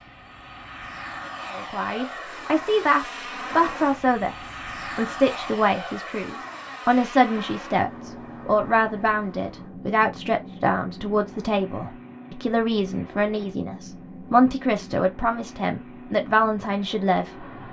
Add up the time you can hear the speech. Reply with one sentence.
You can hear the speech for 16 seconds altogether.